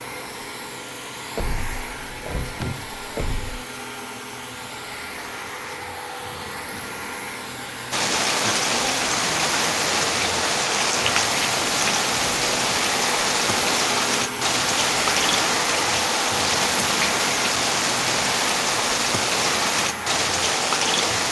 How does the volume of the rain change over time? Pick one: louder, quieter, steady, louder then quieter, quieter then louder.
steady.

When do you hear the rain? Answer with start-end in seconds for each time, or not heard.
7.9-21.2.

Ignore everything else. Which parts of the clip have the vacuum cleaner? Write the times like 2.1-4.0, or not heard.
0.0-21.2.